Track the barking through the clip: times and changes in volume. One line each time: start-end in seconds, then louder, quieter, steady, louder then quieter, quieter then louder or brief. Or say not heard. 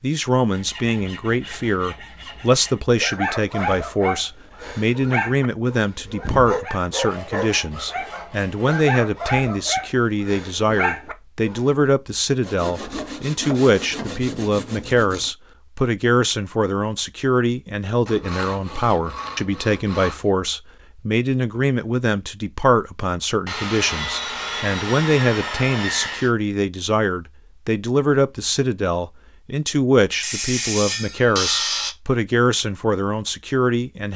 3.0-11.7 steady.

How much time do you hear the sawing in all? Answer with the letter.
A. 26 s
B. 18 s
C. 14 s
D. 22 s
C.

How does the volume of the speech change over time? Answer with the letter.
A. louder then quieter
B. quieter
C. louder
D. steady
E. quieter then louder
D.